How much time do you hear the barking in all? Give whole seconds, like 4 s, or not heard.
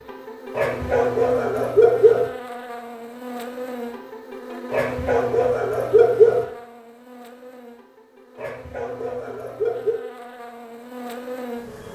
5 s.